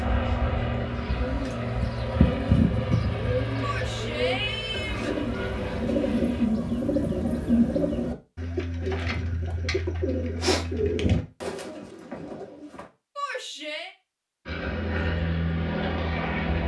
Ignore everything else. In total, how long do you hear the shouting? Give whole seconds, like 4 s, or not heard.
2 s.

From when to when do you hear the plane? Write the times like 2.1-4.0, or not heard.
0.0-6.5, 14.4-16.6.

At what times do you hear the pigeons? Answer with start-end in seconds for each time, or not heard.
0.8-12.8.